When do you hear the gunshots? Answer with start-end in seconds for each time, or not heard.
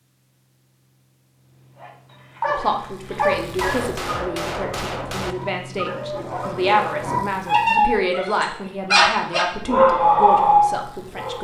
3.4-5.3.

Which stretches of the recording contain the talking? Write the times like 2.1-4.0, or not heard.
2.5-11.3.